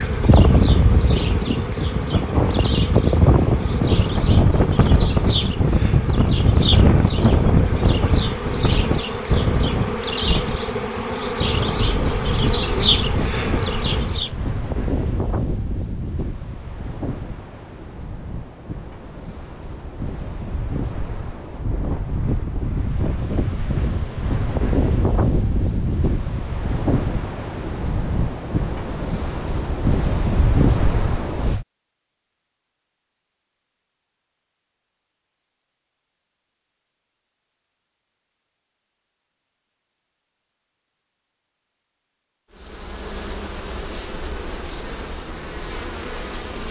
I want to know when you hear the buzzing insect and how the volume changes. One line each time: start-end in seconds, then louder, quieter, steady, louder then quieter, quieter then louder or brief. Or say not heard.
0.0-14.3 louder
42.5-46.6 steady.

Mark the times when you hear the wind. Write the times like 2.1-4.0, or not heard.
0.0-31.6.